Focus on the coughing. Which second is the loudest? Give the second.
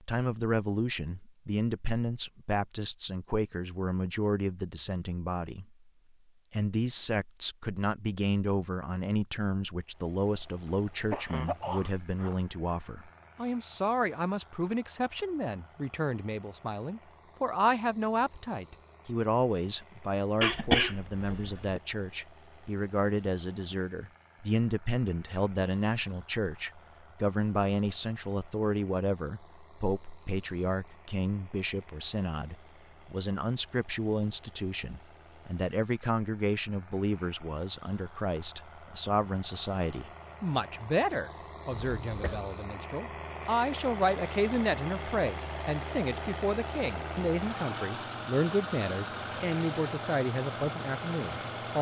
21 s.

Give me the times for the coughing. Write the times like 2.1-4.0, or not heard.
10.7-12.3, 20.4-21.8, 41.7-42.5.